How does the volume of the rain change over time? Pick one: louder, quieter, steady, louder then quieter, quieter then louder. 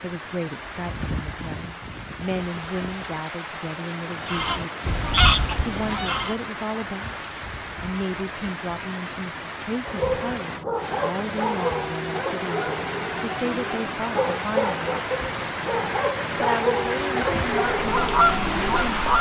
louder.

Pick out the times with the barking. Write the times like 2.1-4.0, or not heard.
9.8-19.1.